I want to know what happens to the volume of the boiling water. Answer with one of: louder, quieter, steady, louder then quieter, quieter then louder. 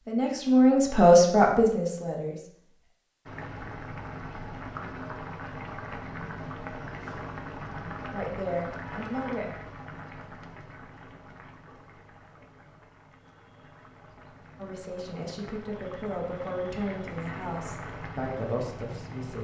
quieter then louder.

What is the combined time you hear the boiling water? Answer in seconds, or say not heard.
16 s.